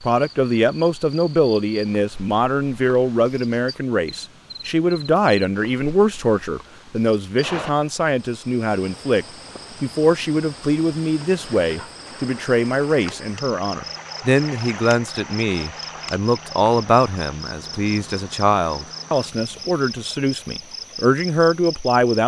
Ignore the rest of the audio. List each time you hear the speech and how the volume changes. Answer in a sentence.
You can hear the speech from 0.0 to 22.2 s, at a steady volume.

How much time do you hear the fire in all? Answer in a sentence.
The fire can't be heard in this clip.